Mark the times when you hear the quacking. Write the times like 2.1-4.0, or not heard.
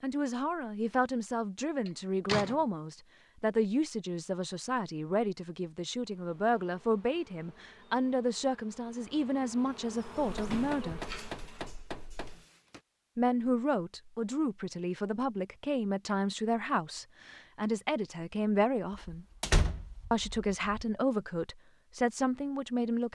not heard.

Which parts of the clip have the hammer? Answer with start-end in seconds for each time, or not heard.
10.2-12.4.